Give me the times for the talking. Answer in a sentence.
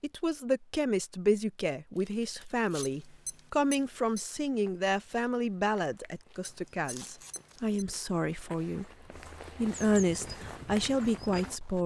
You can hear the talking from 0.0 to 8.8 s and from 9.6 to 11.8 s.